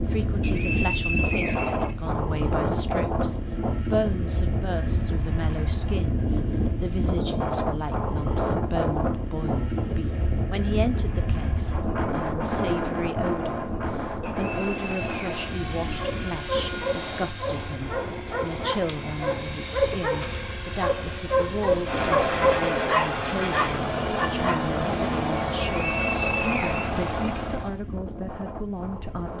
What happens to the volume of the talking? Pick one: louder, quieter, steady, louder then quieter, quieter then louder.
steady.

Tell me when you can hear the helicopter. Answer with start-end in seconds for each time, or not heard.
14.3-27.8.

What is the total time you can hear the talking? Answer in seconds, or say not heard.
29 s.